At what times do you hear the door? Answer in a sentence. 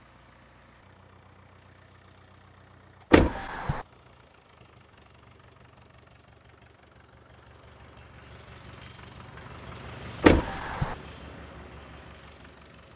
You can hear the door from 3.1 to 3.9 s and from 10.2 to 10.9 s.